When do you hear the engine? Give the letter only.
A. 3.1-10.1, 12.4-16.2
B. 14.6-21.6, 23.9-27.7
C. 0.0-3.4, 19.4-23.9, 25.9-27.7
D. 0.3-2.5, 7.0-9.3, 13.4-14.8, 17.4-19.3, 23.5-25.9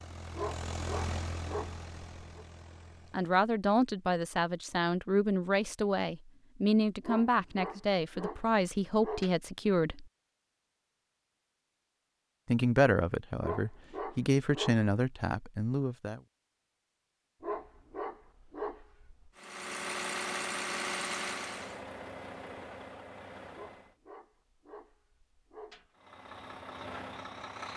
C.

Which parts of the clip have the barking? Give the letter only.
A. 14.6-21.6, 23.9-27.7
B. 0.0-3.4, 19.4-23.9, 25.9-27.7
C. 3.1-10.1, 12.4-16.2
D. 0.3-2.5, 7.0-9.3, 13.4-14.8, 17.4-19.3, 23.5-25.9
D.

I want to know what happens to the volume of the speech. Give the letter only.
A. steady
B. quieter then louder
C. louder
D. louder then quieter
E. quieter
A.